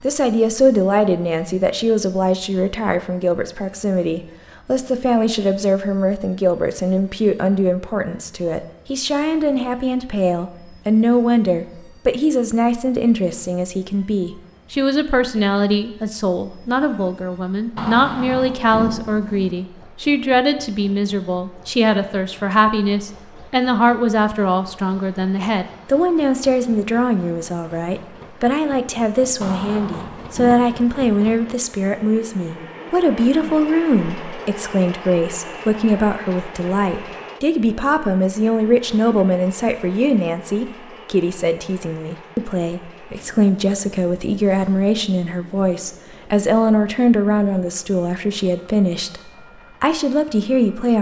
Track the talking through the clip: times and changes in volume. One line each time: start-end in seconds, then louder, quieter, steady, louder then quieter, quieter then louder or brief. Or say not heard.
0.0-50.9 steady.